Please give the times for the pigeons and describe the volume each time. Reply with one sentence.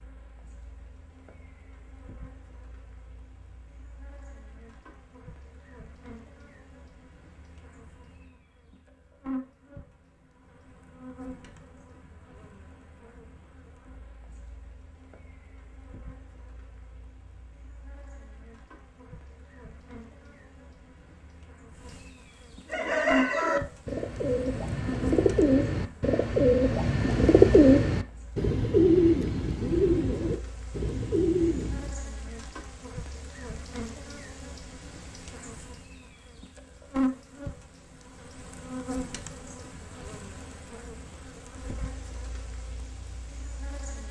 You can hear the pigeons from 22.7 to 31.9 s, getting louder then quieter.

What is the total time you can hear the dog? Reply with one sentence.
You can't hear the dog here.